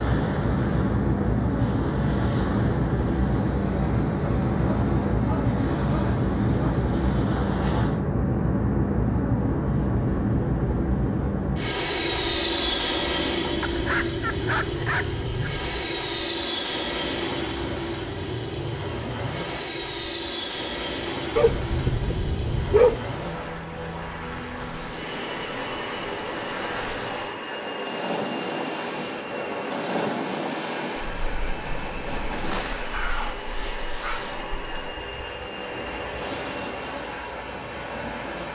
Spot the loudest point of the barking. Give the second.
23 s.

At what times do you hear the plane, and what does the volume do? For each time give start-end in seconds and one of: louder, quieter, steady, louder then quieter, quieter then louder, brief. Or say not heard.
0.0-38.5 quieter.